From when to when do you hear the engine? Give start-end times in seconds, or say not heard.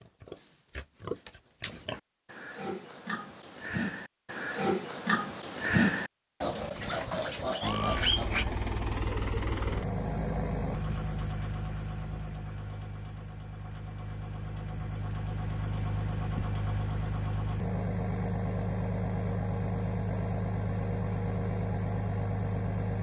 7.6-22.9.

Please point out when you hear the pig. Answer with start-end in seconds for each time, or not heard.
0.0-8.4.